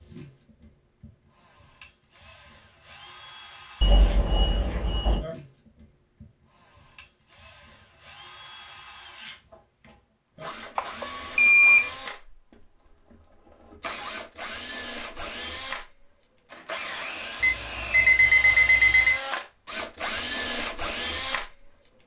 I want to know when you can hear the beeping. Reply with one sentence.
The beeping can be heard from 3.8 to 5.2 s, from 10.8 to 11.9 s and from 17.4 to 19.1 s.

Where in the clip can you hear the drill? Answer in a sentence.
You can hear the drill from 0.0 to 21.7 s.